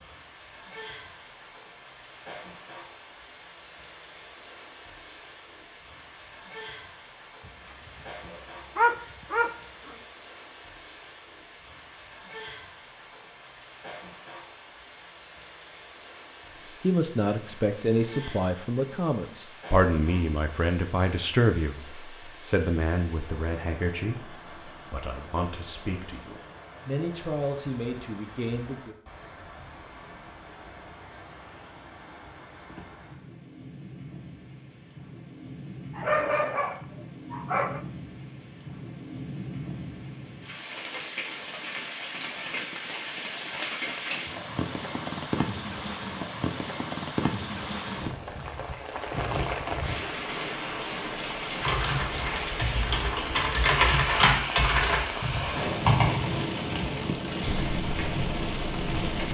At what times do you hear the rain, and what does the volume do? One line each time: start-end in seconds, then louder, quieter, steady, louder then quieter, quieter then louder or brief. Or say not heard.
0.0-59.2 louder.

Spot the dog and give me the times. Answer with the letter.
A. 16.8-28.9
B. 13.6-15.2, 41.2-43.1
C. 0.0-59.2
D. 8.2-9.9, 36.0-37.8
D.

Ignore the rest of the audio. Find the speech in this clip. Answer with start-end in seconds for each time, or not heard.
16.8-28.9.